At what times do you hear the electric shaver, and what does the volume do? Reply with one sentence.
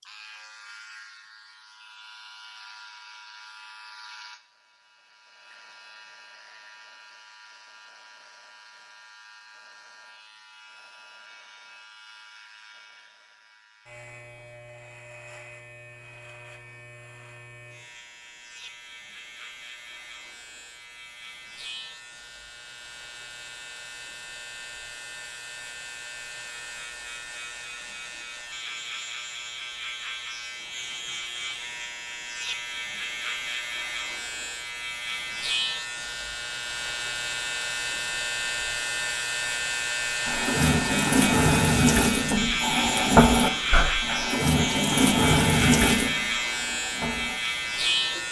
You can hear the electric shaver from 0.0 to 48.2 s, getting louder.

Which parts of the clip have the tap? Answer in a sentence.
You can hear the tap from 40.2 to 48.2 s.